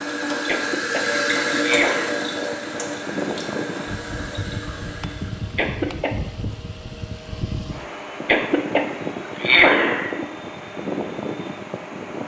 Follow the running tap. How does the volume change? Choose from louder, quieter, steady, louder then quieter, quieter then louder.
quieter.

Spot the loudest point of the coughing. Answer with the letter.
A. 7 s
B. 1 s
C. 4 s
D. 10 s
D.